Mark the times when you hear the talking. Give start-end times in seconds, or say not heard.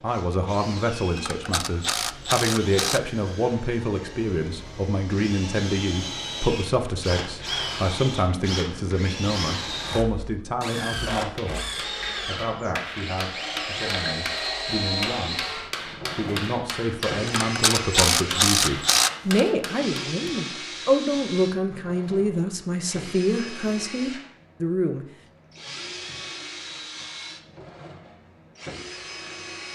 0.0-25.1.